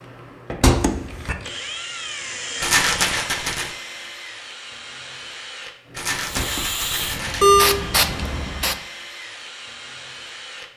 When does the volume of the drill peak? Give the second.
2 s.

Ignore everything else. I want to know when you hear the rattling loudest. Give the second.
3 s.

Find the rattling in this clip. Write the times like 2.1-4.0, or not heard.
2.6-3.8, 5.9-7.5.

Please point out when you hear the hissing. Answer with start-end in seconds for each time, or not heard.
6.2-8.8.